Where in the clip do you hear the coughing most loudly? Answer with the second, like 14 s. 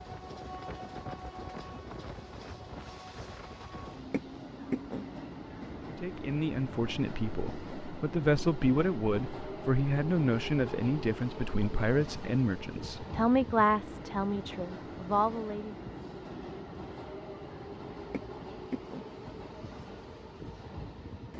5 s.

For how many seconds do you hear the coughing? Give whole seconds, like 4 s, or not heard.
2 s.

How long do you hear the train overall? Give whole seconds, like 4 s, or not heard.
21 s.